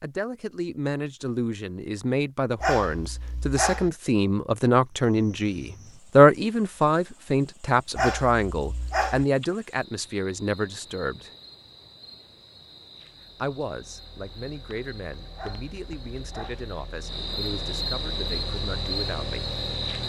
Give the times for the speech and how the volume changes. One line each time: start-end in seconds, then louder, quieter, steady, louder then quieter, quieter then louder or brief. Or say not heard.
0.0-11.3 louder then quieter
13.3-19.4 steady.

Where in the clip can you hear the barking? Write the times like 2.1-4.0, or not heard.
2.6-3.9, 8.0-9.2, 15.3-16.6.